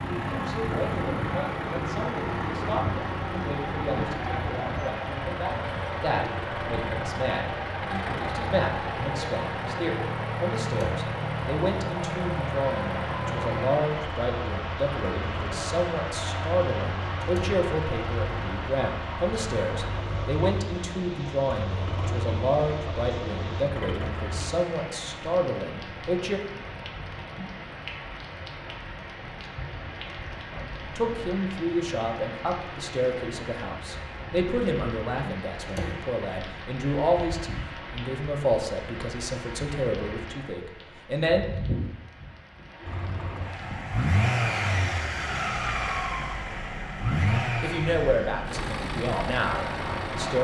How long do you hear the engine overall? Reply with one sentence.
The engine can be heard for 32 seconds in total.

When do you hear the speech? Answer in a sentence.
The speech can be heard from 0.1 to 26.4 s, from 30.5 to 41.5 s and from 47.6 to 50.3 s.